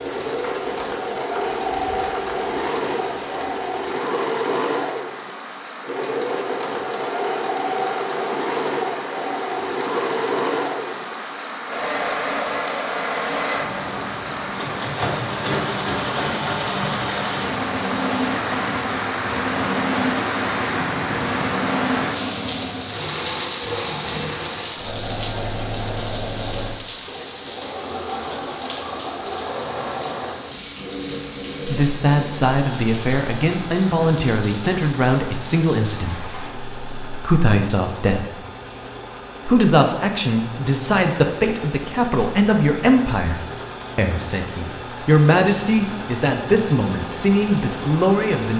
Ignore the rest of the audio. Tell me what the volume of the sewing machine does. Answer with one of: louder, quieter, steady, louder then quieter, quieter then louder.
quieter.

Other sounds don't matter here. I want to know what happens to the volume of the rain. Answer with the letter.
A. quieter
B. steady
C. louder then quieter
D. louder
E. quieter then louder
C.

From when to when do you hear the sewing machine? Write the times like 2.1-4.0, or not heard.
0.0-48.5.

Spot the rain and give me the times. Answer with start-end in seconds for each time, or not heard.
0.0-36.5.